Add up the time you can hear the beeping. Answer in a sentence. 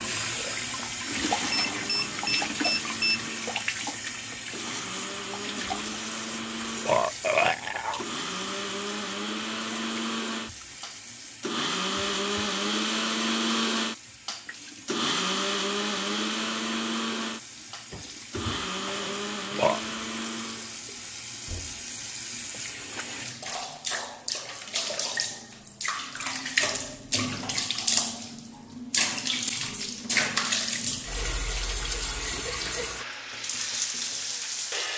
You can hear the beeping for 2 seconds altogether.